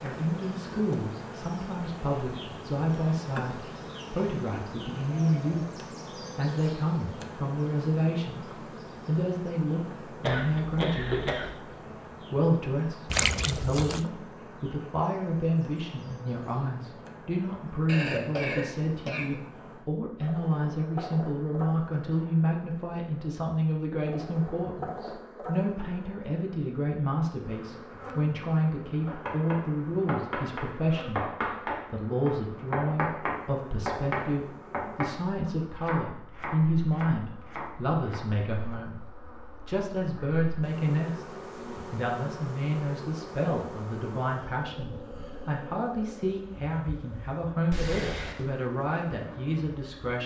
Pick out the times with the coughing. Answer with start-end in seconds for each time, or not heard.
10.2-11.5, 17.9-19.4, 47.7-48.5.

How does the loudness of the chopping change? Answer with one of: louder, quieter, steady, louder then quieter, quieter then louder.
quieter.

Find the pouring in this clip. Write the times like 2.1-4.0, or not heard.
13.1-14.1.